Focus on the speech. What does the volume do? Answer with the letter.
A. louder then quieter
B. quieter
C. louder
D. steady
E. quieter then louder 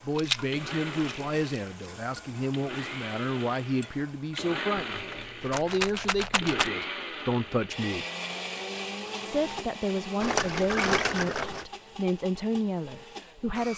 D.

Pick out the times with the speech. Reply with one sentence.
You can hear the speech from 0.0 to 8.1 s and from 9.2 to 13.7 s.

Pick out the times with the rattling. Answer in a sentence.
The rattling can be heard from 0.1 to 1.9 s, from 4.8 to 6.7 s and from 10.2 to 11.7 s.